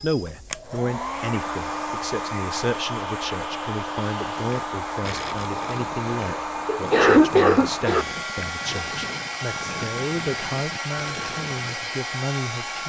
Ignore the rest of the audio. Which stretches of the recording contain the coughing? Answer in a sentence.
The coughing can be heard from 6.1 to 8.1 s.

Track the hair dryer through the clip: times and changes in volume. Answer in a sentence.
You can hear the hair dryer from 0.0 to 12.8 s, at a steady volume.